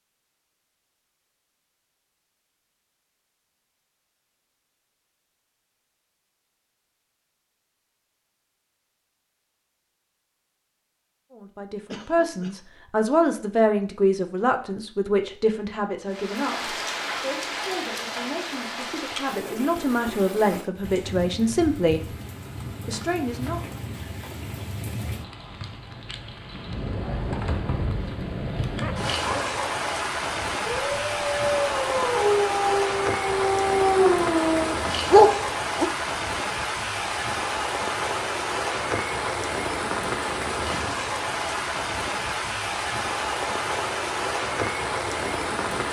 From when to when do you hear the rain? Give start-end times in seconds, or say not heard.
16.1-45.8.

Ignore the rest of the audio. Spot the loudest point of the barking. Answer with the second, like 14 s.
35 s.